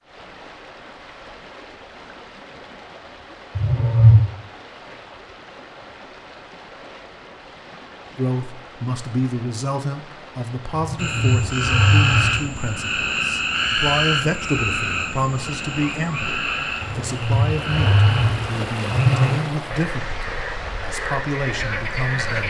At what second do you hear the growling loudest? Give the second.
4 s.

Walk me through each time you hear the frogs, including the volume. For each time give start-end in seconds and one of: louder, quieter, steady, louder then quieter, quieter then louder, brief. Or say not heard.
10.9-22.4 quieter.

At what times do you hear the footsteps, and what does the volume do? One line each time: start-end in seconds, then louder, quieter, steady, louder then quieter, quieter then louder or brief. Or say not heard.
not heard.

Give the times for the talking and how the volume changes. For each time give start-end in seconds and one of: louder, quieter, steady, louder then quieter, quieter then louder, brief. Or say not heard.
8.2-22.4 steady.